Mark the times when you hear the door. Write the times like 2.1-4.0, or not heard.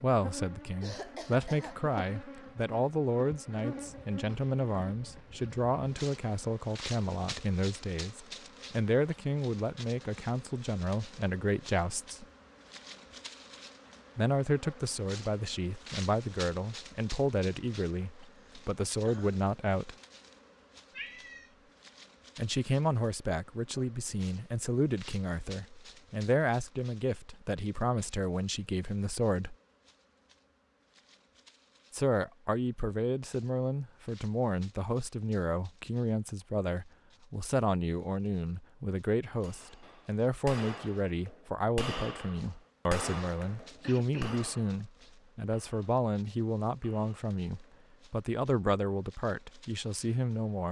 not heard.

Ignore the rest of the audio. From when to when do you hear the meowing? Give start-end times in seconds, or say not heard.
20.9-21.7.